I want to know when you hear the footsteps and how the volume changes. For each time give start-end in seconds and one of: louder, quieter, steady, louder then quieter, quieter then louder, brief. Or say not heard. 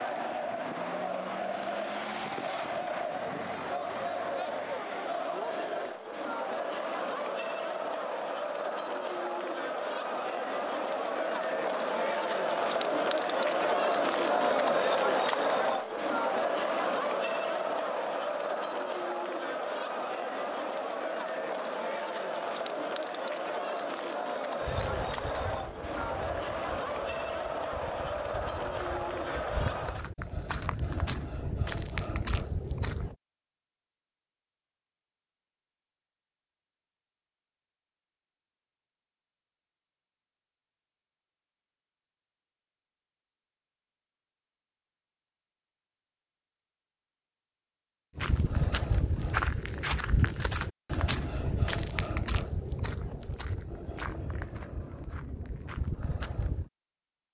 24.6-33.1 quieter then louder
48.1-56.7 quieter.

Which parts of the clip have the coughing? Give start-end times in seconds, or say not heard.
not heard.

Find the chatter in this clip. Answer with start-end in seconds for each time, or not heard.
0.0-30.1.